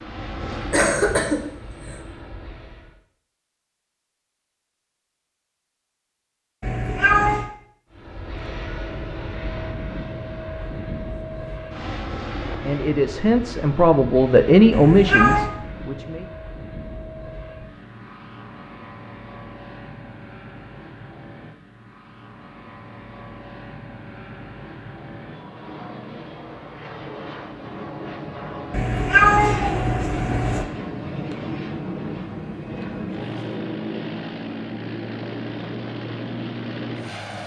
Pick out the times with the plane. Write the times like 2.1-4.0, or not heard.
0.0-3.0, 7.9-37.4.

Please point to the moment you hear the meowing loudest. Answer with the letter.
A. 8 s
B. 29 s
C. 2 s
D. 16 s
B.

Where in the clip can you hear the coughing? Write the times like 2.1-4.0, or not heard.
0.3-1.9.